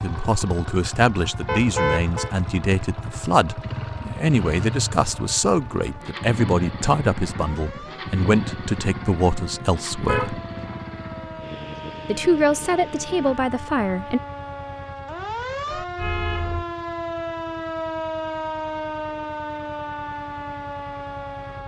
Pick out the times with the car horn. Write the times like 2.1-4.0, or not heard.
1.4-2.4, 9.3-10.8, 15.7-16.6.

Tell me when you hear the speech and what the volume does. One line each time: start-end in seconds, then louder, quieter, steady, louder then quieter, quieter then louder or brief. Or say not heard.
0.0-10.4 steady
12.1-14.2 brief.